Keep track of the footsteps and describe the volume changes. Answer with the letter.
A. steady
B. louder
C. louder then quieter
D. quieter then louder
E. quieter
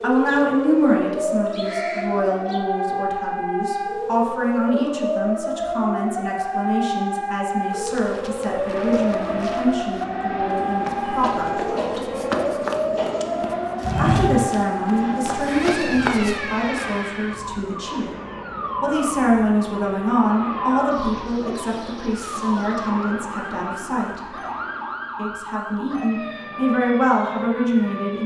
C.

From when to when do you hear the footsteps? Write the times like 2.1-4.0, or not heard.
7.7-16.4.